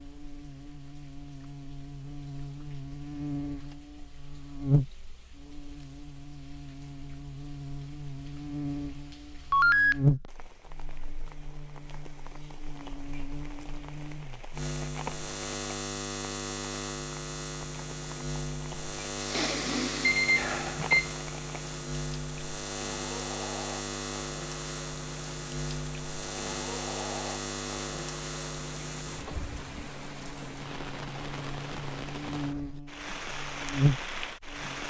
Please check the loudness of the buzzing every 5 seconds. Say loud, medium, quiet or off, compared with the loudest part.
loud, medium, loud, loud, loud, loud, loud.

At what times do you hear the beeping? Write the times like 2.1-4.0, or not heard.
9.5-9.9, 20.0-21.1.